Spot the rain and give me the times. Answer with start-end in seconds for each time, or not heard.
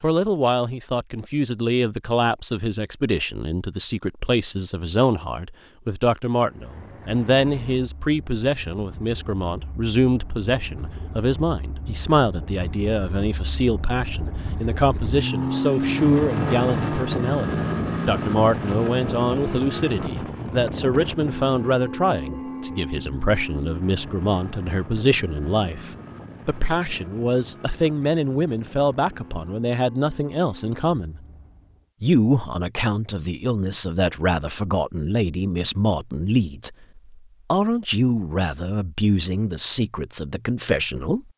not heard.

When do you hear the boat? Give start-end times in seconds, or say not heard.
6.3-31.9.